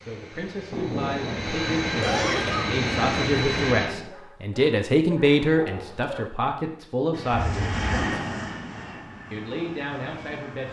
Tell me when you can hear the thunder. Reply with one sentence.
The thunder can be heard from 0.7 to 4.1 s.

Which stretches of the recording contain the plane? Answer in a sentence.
The plane can be heard from 0.0 to 4.0 s and from 7.1 to 10.6 s.